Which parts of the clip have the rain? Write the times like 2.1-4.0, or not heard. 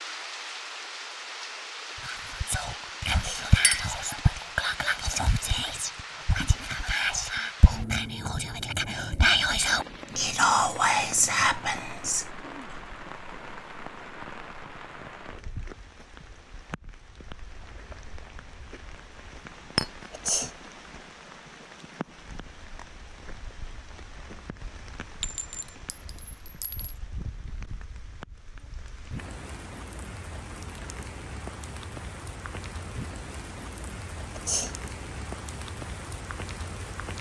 0.0-37.1.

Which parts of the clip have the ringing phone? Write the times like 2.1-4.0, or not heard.
not heard.